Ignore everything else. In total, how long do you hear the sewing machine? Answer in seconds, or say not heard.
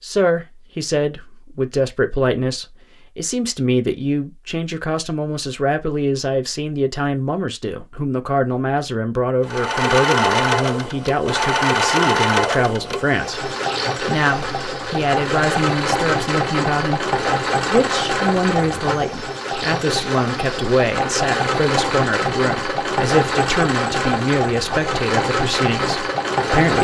17 s.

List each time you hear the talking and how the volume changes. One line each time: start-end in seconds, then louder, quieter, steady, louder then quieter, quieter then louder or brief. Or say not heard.
0.0-26.7 steady.